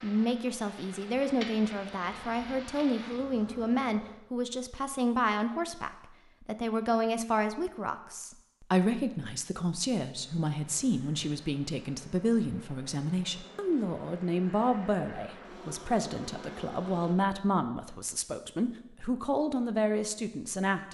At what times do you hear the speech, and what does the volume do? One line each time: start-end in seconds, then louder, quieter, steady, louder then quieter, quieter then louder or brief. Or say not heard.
0.0-20.9 steady.